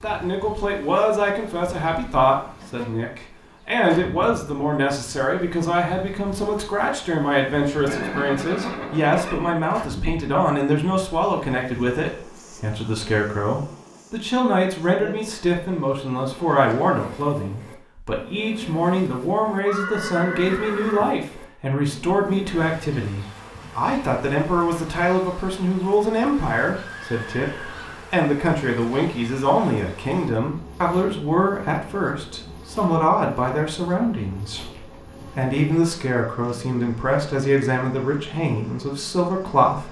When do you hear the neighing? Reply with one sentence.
You can hear the neighing from 7.8 to 9.6 s, from 19.6 to 21.1 s and from 26.8 to 28.1 s.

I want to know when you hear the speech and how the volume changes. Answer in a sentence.
You can hear the speech from 0.0 to 39.8 s, at a steady volume.